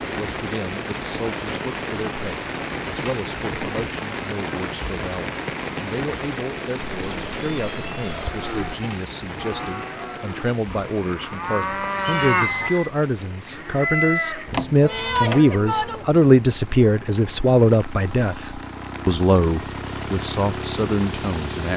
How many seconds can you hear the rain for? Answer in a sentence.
You can hear the rain for 22 seconds altogether.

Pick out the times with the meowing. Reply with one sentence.
The meowing can be heard from 6.9 to 8.8 s and from 11.5 to 12.9 s.